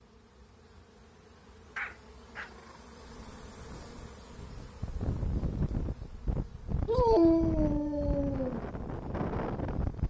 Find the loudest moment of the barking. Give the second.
7 s.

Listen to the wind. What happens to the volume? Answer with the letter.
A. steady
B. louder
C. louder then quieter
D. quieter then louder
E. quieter
B.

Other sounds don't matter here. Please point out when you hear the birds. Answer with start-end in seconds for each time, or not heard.
not heard.